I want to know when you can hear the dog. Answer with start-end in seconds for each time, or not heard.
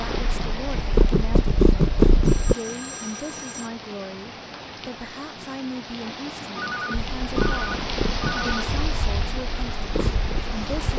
not heard.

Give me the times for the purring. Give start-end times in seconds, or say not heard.
0.0-2.5, 7.0-10.9.